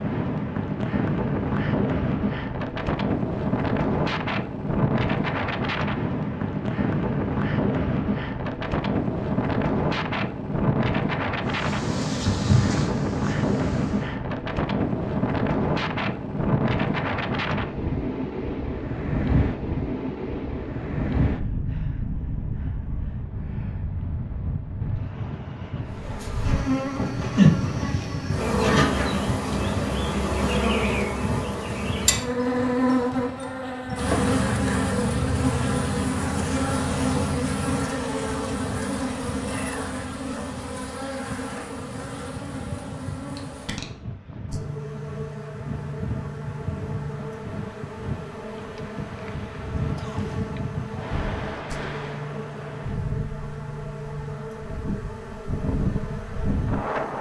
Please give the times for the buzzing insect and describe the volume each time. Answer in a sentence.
The buzzing insect can be heard briefly from 11.4 to 14.2 s; and from 25.9 to 57.1 s, getting quieter.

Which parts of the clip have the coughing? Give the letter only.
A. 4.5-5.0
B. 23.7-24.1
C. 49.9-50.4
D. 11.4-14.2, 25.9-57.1
C.